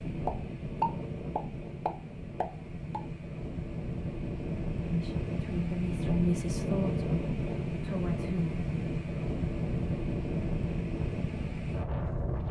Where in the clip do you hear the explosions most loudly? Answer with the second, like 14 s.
1 s.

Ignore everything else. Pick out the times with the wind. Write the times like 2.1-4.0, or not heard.
0.0-12.4.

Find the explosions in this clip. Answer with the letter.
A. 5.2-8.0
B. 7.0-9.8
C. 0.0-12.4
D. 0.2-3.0
D.